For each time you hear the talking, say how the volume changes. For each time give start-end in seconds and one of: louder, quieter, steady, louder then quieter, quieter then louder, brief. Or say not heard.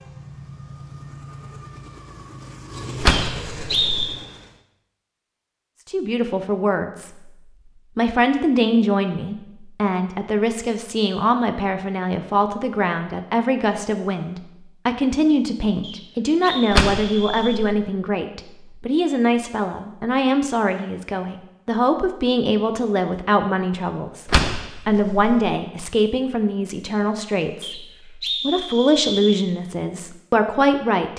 5.8-31.1 steady.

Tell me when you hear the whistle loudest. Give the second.
4 s.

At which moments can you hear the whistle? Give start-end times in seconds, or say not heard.
3.1-4.1, 15.8-17.6, 27.6-29.1.